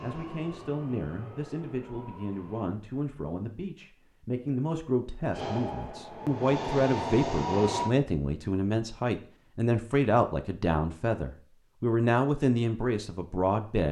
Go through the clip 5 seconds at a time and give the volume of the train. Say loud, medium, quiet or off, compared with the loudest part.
quiet, loud, off.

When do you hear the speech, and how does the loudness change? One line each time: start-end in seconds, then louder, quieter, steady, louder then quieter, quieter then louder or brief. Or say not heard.
0.0-13.8 louder.